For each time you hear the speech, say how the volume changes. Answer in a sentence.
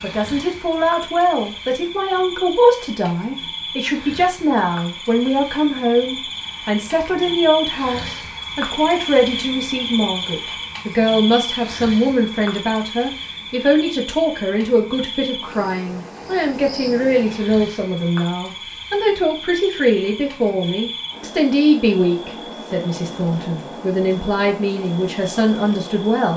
You can hear the speech from 0.0 to 26.3 s, at a steady volume.